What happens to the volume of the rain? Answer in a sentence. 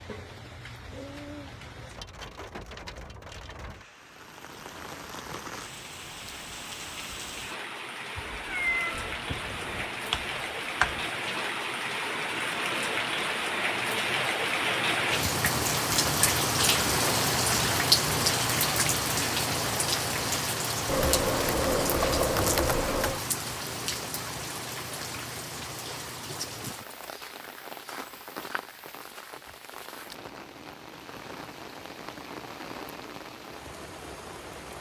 The loudness of the rain goes up, then down.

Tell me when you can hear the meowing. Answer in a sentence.
You can hear the meowing from 8.2 to 9.8 s.